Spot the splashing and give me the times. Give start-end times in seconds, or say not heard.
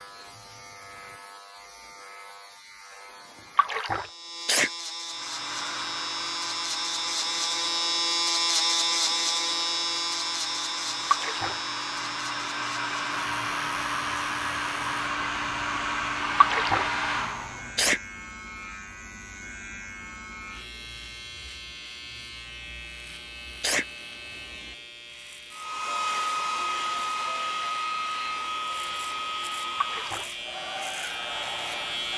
3.5-4.0, 11.1-11.6, 16.4-16.9, 29.8-30.3.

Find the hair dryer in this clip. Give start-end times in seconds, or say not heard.
5.0-17.9, 25.5-32.1.